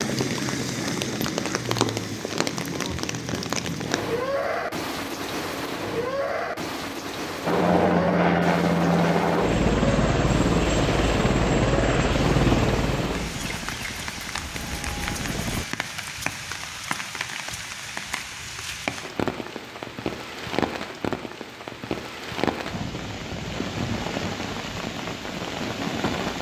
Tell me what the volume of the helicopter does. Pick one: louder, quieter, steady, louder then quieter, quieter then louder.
quieter.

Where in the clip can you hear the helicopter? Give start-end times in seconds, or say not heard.
7.5-15.7.